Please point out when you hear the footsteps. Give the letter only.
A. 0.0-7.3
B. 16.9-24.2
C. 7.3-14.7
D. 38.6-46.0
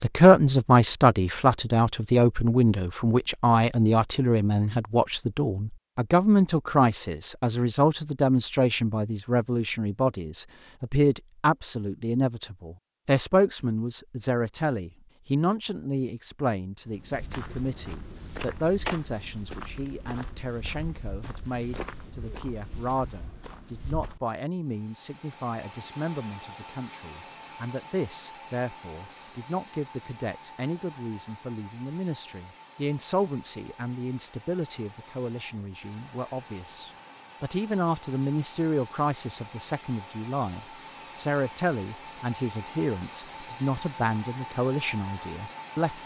B.